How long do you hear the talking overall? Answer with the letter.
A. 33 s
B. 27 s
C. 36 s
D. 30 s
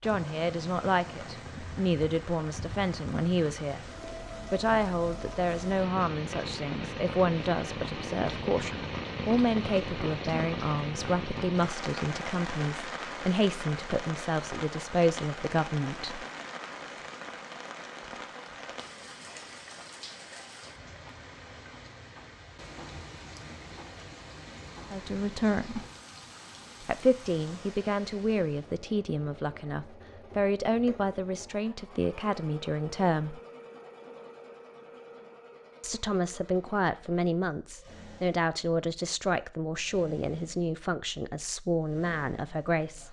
D.